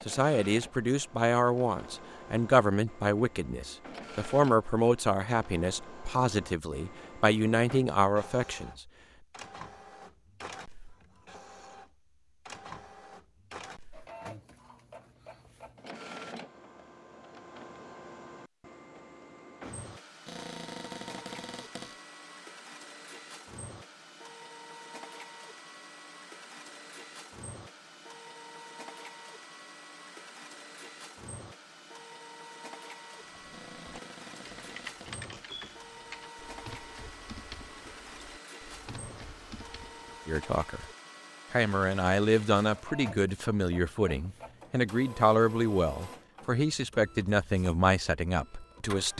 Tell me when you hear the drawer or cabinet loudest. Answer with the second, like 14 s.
21 s.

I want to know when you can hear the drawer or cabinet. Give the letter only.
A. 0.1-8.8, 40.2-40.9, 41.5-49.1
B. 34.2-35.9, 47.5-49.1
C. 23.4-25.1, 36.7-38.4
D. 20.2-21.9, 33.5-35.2
D.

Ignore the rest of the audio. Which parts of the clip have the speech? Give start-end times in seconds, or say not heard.
0.1-8.8, 40.2-40.9, 41.5-49.1.